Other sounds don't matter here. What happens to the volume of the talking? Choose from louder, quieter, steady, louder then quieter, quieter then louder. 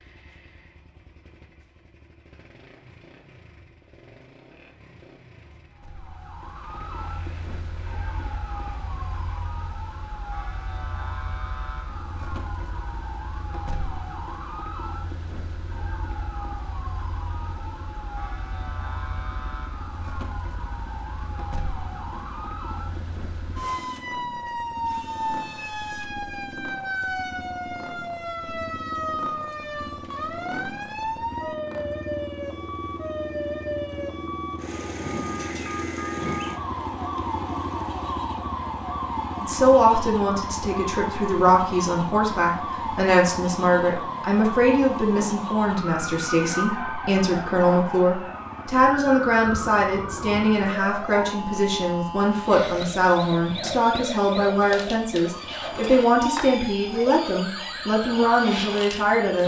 steady.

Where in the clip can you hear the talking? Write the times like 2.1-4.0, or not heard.
39.4-59.4.